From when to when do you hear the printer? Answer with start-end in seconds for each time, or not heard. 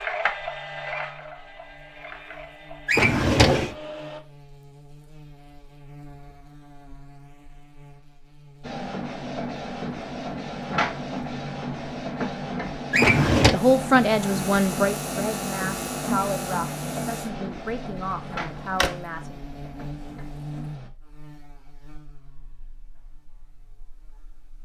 0.0-4.2, 8.6-20.9.